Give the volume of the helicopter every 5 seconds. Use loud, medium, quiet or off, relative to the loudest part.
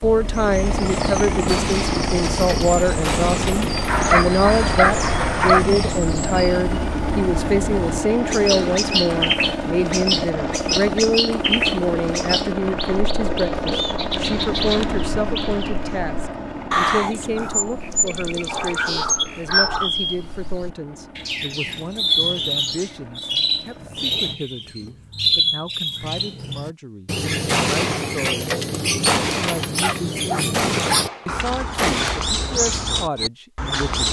loud, loud, loud, medium, quiet, off, off.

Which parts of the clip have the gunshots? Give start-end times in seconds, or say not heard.
1.4-3.9, 27.4-32.2.